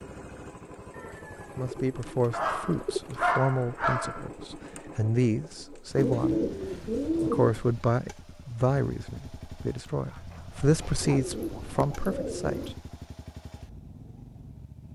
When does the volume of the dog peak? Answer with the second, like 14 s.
3 s.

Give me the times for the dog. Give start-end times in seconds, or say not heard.
2.3-4.2, 9.9-11.4.